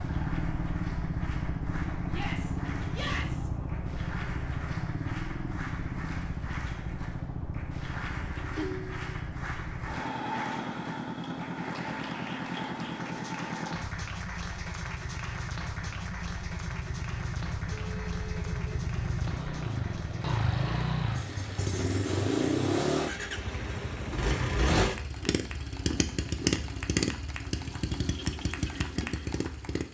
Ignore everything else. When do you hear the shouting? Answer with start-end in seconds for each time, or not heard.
2.0-3.5.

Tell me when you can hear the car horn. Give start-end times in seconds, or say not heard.
17.7-18.8.